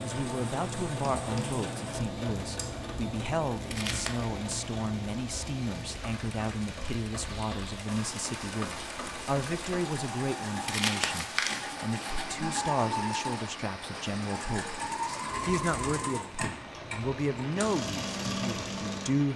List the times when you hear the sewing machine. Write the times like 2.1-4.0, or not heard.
0.0-19.3.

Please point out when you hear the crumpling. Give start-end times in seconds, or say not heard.
3.6-4.2, 10.7-12.2.